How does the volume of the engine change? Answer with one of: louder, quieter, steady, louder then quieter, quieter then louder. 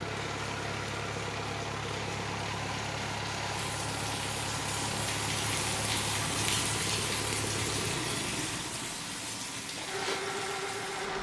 steady.